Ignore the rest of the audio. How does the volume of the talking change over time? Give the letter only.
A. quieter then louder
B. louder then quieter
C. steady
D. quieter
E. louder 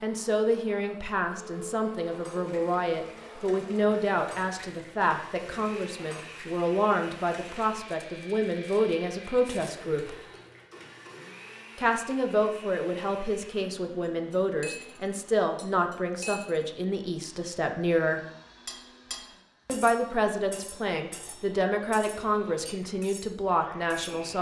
C.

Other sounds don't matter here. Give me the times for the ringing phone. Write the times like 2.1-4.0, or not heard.
not heard.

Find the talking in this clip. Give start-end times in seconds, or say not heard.
0.0-10.2, 11.8-18.2, 19.6-24.3.